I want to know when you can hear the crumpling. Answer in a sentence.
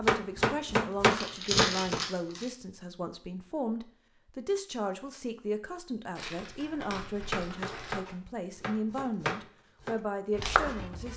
The crumpling can be heard from 1.1 to 2.5 s and from 6.2 to 8.0 s.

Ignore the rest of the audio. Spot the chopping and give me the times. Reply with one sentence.
The chopping can be heard from 0.1 to 2.0 s and from 7.2 to 11.1 s.